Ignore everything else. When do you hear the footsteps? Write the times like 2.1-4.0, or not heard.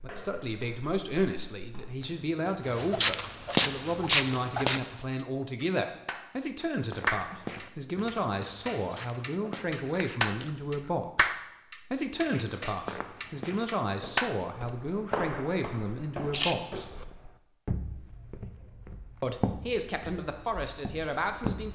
0.0-5.0, 6.9-10.2, 12.1-21.7.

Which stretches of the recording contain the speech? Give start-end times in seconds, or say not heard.
0.0-11.3, 11.9-16.9, 19.2-21.7.